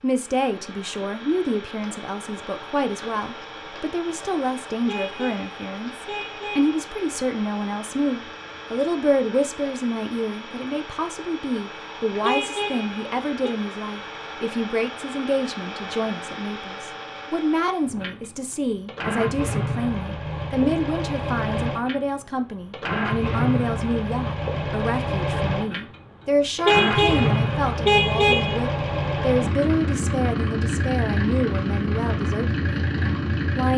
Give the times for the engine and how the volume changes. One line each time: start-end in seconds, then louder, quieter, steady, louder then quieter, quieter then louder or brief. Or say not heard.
0.0-33.7 louder.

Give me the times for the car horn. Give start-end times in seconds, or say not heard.
4.8-6.8, 12.2-13.6, 26.6-28.6.